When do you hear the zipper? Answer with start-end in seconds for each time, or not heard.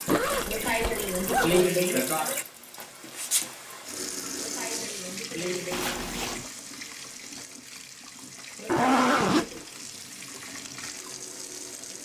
0.1-1.7, 5.7-6.5, 8.7-9.6.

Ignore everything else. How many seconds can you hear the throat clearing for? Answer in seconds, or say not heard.
5 s.